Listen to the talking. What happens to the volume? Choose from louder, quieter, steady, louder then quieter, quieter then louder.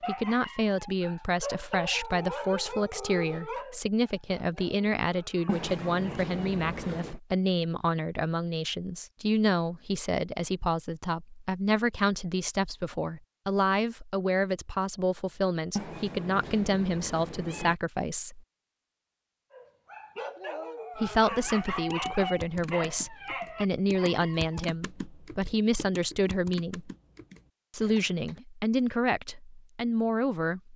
steady.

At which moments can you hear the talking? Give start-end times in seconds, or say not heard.
0.1-18.4, 20.9-26.9, 27.7-30.7.